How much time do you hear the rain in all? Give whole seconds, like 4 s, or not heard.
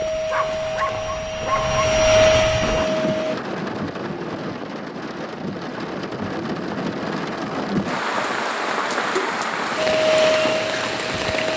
9 s.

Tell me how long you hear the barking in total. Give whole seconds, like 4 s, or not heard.
3 s.